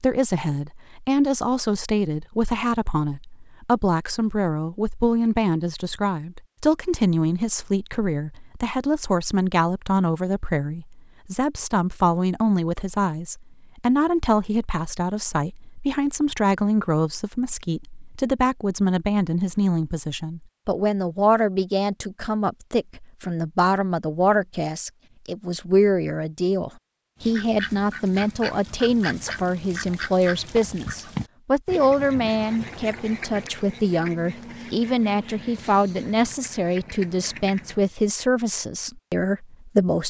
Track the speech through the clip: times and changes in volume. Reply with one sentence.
The speech can be heard from 0.0 to 40.0 s, at a steady volume.